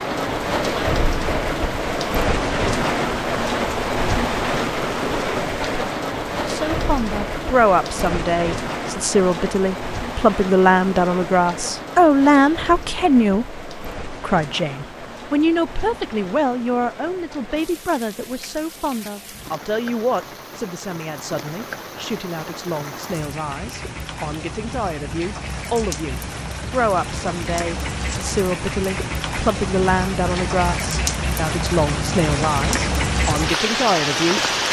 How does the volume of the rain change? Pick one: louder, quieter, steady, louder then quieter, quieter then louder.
quieter then louder.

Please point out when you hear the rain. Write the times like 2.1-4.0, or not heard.
0.0-34.6.